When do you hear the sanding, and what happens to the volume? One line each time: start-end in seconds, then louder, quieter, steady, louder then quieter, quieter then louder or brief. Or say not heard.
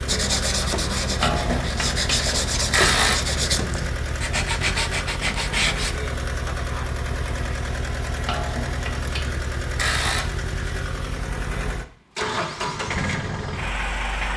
0.1-6.0 steady.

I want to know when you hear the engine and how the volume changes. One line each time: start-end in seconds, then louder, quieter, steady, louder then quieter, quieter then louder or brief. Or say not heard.
0.0-14.3 steady.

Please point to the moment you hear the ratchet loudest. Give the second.
3 s.